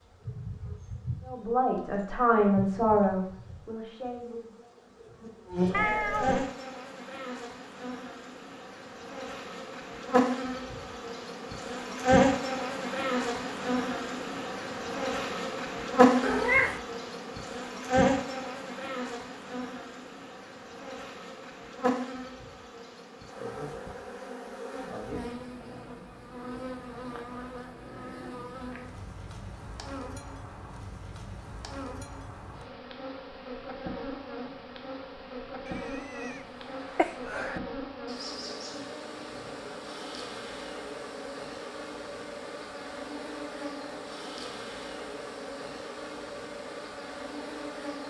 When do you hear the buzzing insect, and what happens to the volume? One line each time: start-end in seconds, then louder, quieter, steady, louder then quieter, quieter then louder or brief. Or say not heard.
0.0-48.0 louder then quieter.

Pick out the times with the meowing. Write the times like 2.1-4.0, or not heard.
5.7-6.5, 16.2-16.8, 35.8-37.6.